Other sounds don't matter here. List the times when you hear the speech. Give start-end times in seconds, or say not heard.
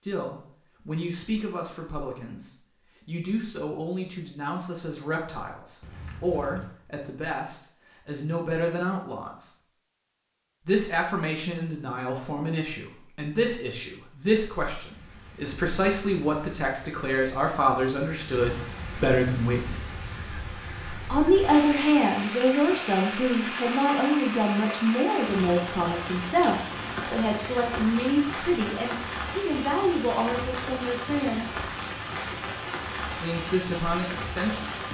0.0-9.5, 10.6-19.7, 21.1-31.5, 33.1-34.7.